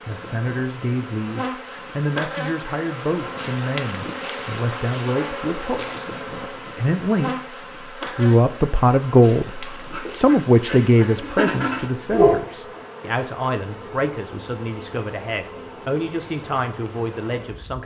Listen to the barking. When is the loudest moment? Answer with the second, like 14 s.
12 s.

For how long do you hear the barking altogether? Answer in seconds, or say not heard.
3 s.